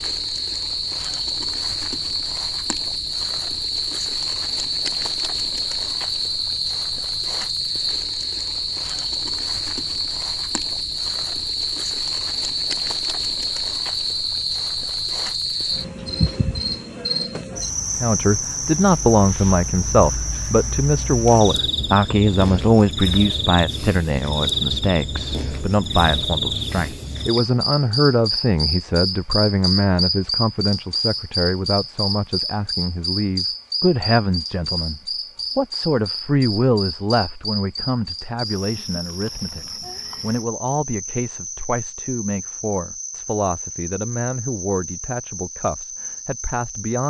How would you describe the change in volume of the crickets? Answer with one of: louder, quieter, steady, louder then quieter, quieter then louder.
quieter.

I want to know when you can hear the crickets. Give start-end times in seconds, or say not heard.
0.0-47.0.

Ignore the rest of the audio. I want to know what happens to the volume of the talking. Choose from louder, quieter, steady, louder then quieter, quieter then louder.
quieter.